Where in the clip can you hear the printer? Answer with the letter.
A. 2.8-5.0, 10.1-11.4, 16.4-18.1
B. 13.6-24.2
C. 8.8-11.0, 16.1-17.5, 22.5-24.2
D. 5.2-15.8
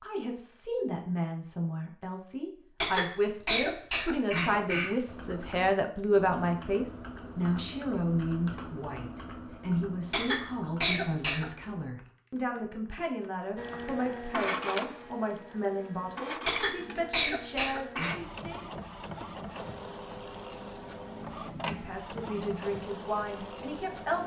B.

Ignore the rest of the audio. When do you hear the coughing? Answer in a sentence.
The coughing can be heard from 2.8 to 5.0 s, from 10.1 to 11.4 s and from 16.4 to 18.1 s.